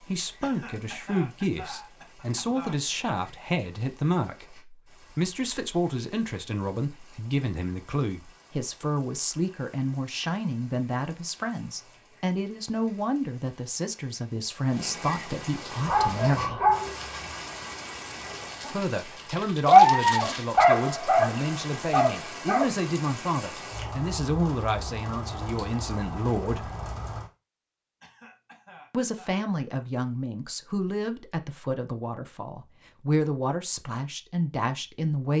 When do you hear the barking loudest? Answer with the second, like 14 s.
20 s.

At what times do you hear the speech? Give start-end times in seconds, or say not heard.
0.0-16.6, 18.7-26.7, 28.9-35.3.